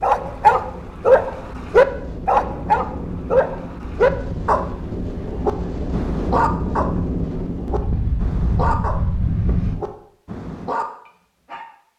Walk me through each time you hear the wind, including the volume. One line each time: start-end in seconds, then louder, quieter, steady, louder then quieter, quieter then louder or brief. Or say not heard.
0.0-9.8 louder.